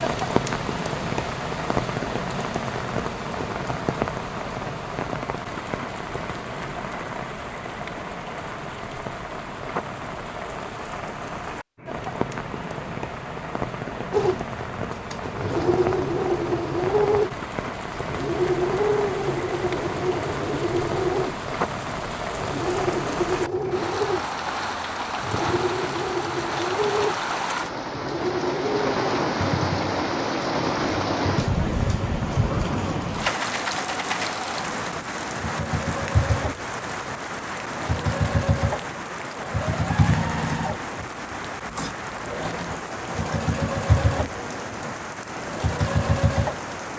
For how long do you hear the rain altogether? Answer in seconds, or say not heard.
47 s.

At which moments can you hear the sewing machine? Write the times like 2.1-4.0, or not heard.
14.1-46.8.